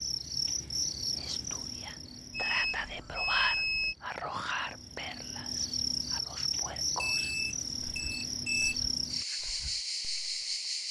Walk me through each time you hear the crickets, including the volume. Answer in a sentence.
You can hear the crickets from 0.0 to 10.8 s, getting quieter then louder.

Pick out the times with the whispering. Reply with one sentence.
You can hear the whispering from 1.1 to 10.6 s.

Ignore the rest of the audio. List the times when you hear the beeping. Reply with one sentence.
You can hear the beeping from 2.3 to 4.0 s and from 7.0 to 8.7 s.